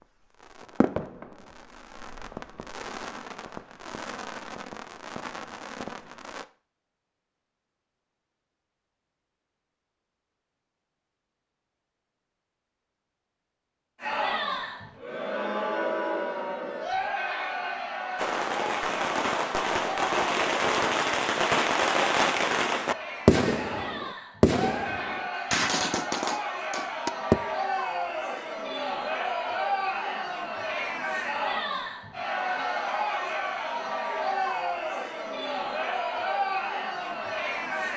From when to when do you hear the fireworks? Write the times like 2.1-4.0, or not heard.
0.3-6.5, 18.1-27.4.